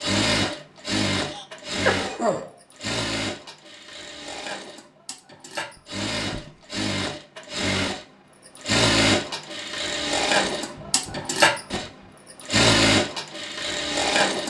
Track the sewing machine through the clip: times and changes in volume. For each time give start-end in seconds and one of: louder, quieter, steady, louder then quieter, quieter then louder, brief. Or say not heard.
0.0-14.4 quieter then louder.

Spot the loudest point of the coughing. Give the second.
2 s.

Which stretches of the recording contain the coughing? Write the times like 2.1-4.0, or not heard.
1.2-2.5, 5.8-6.6, 10.6-12.2.